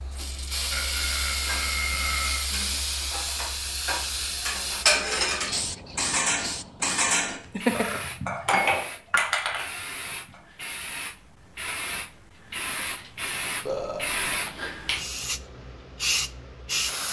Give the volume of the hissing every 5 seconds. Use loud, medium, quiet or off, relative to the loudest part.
loud, medium, loud, loud.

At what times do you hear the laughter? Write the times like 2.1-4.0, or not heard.
7.5-8.2.